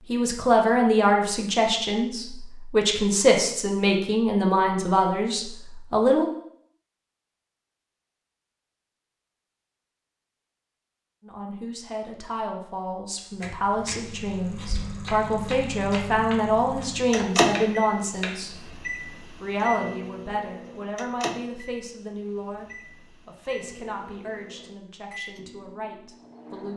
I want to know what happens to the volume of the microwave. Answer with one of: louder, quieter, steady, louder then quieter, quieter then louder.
louder then quieter.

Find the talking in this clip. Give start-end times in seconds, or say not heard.
0.1-6.2, 11.2-26.7.